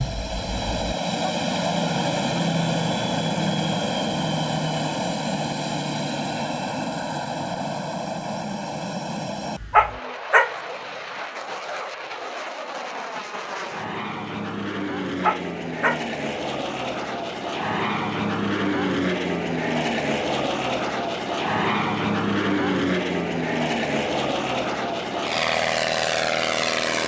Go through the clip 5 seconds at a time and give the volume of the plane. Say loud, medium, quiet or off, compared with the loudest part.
loud, medium, medium, loud, loud, loud.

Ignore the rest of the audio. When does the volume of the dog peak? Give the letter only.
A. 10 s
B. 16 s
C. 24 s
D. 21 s
A.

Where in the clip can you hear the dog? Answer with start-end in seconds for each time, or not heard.
9.7-10.5, 15.2-16.0.